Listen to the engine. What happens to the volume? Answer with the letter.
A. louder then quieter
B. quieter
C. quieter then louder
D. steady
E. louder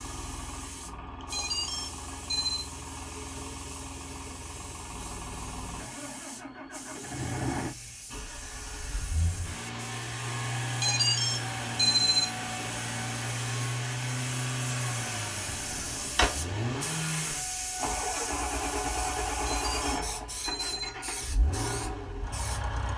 E.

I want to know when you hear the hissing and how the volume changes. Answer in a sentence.
The hissing can be heard from 0.0 to 22.7 s, getting louder.